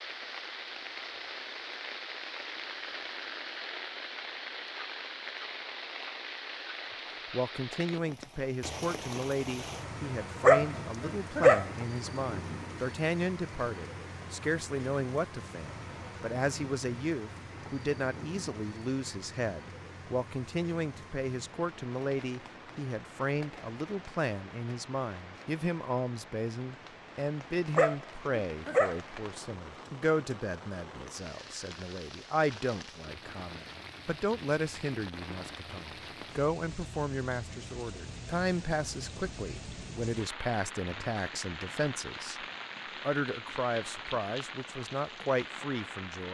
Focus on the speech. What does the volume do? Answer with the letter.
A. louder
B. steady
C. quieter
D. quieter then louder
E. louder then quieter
B.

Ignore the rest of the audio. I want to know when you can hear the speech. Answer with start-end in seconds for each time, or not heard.
7.3-46.2.